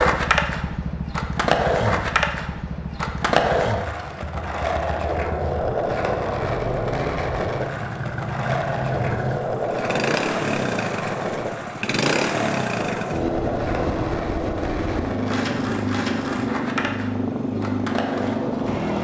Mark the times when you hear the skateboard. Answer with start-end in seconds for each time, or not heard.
0.0-18.9.